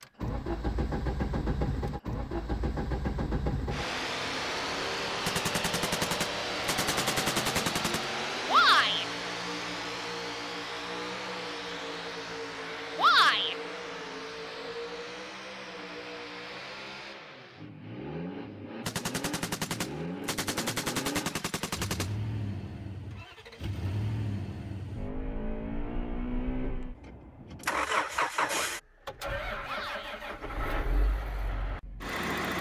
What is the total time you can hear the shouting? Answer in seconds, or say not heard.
2 s.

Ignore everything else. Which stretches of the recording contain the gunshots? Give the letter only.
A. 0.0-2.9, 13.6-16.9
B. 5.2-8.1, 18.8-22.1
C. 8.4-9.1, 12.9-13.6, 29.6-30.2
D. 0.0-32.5
B.